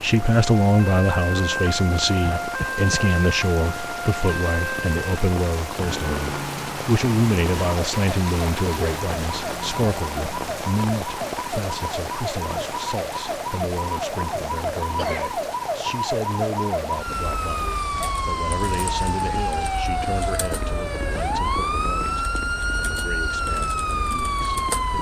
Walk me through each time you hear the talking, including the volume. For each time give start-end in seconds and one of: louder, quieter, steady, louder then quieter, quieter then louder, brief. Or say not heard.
0.0-24.9 quieter.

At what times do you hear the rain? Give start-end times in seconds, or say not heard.
0.0-19.8.